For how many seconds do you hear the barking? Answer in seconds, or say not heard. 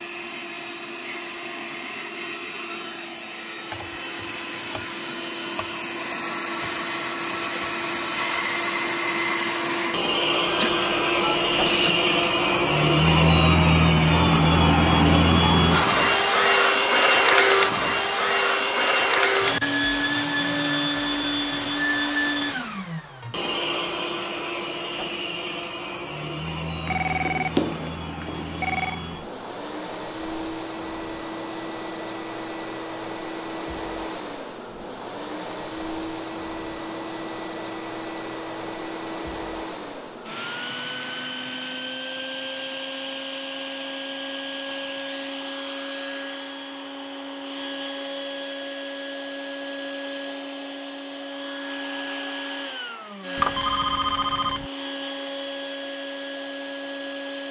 not heard.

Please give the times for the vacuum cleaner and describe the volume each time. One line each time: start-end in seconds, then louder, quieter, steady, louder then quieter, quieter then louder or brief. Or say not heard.
0.0-57.4 louder then quieter.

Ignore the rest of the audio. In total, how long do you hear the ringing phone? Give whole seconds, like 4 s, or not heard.
5 s.